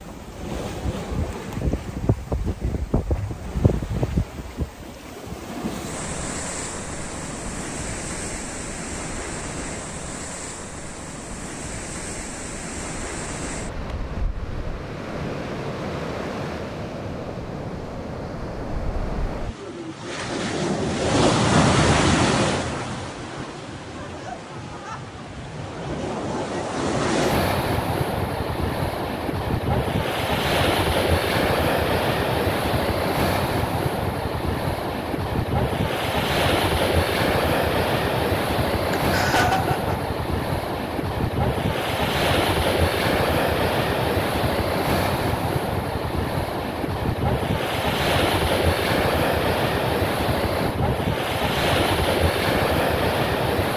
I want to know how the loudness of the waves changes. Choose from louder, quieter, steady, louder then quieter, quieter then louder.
louder.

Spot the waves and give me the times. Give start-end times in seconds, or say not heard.
0.0-53.7.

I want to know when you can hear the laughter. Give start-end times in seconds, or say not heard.
23.9-25.1, 38.9-40.1.